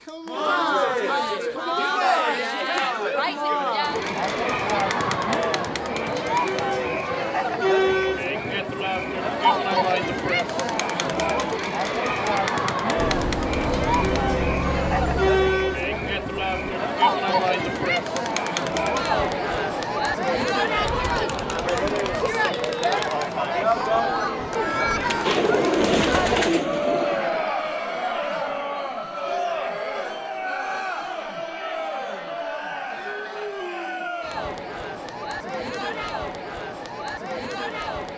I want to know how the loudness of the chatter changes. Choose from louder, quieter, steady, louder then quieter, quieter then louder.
quieter.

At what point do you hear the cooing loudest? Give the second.
26 s.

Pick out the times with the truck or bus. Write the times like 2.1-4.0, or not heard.
12.9-16.8.